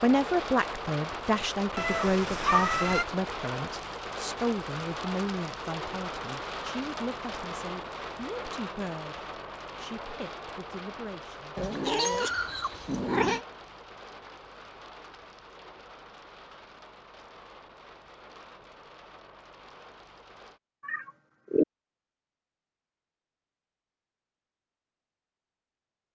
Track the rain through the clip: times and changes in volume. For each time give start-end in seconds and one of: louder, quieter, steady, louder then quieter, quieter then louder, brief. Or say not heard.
0.0-20.6 quieter.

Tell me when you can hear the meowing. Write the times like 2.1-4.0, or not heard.
1.8-3.0, 11.6-13.4, 20.8-21.6.